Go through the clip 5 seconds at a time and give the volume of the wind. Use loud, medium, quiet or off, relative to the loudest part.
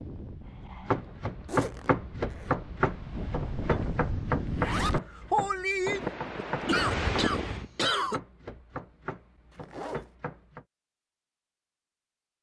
medium, loud, off.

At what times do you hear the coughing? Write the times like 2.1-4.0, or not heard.
6.7-8.2.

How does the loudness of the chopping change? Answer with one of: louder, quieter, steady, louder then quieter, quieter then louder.
quieter.